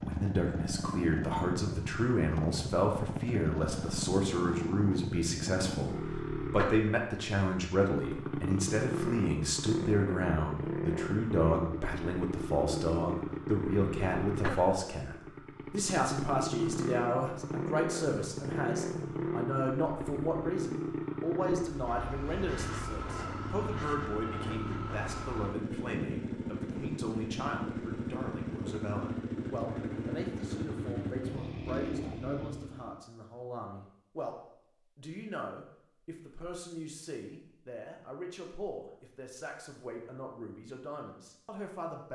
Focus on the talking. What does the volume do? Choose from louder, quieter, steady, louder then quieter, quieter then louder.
quieter.